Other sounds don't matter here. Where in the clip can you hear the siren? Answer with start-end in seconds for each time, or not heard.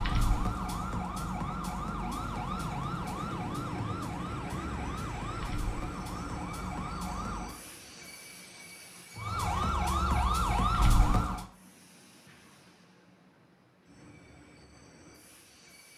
0.0-7.5, 9.2-11.4.